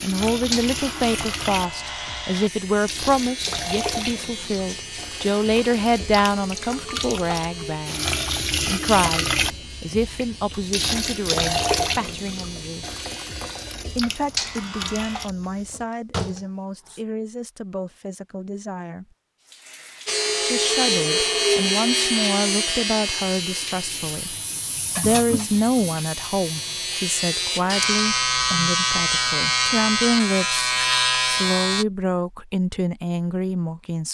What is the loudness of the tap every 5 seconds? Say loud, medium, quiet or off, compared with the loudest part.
loud, loud, loud, medium, medium, medium, off.